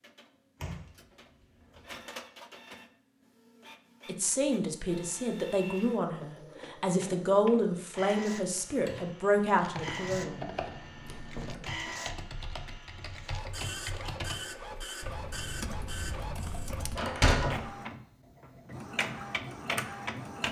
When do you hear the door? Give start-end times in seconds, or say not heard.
0.6-1.9, 11.1-11.7, 16.9-17.6.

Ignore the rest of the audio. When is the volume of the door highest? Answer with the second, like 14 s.
17 s.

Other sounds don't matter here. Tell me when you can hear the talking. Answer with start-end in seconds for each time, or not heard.
4.0-10.4.